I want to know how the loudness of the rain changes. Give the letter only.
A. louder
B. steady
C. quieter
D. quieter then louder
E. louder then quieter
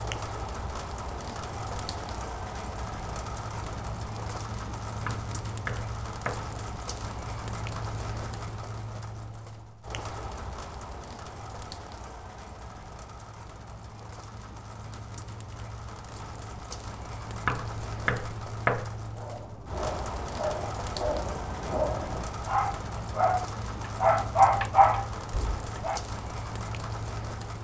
D.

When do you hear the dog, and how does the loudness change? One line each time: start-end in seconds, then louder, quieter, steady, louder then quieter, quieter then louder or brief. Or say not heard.
19.1-26.0 louder.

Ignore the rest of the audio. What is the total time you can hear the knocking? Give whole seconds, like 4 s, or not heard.
3 s.